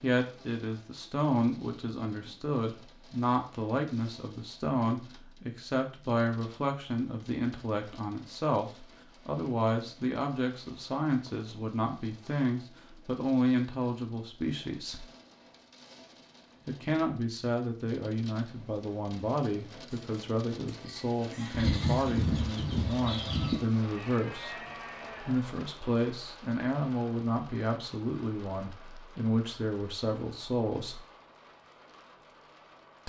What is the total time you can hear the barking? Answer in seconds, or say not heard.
not heard.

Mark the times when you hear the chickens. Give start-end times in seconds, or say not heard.
21.5-23.6.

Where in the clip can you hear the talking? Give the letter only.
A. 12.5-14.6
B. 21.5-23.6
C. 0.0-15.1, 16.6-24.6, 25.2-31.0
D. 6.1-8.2
C.